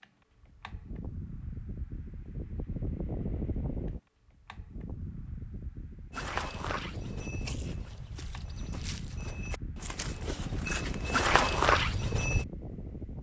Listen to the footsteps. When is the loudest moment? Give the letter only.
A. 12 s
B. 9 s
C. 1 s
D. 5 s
A.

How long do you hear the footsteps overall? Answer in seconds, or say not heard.
6 s.